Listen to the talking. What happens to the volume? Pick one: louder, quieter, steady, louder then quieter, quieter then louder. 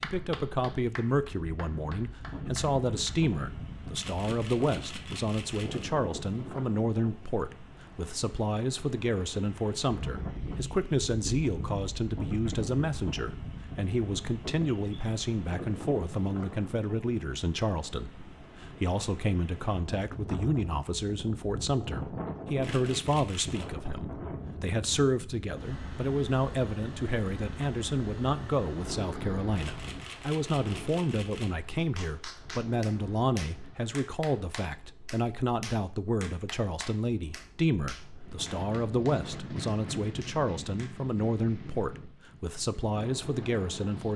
steady.